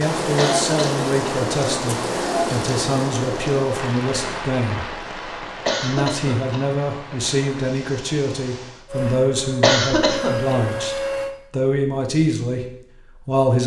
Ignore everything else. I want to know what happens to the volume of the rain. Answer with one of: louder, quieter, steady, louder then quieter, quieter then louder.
quieter.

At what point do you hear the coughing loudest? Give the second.
10 s.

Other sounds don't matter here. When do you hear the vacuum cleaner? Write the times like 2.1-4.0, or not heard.
8.8-11.3.